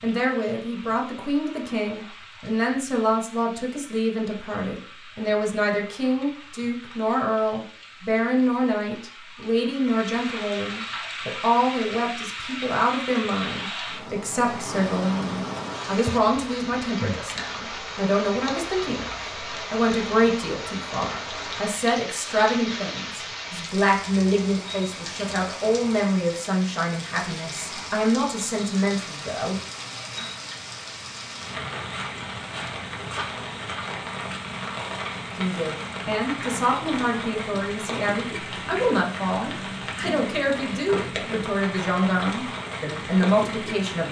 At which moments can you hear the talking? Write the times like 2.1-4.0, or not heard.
0.0-29.6, 35.4-44.0.